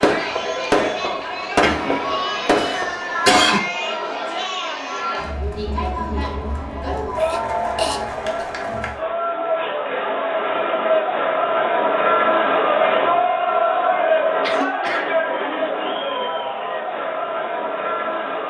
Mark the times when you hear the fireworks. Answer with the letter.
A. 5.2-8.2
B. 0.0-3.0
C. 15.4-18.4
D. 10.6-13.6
B.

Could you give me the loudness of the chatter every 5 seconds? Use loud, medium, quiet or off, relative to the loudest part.
medium, medium, loud, medium.